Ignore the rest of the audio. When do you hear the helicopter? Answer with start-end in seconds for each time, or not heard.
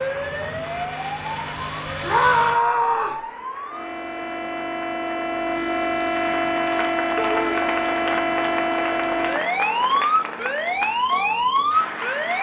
0.0-2.6.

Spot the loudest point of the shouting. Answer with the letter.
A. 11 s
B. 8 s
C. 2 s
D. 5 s
C.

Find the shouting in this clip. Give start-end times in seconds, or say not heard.
2.0-3.2, 7.2-7.6.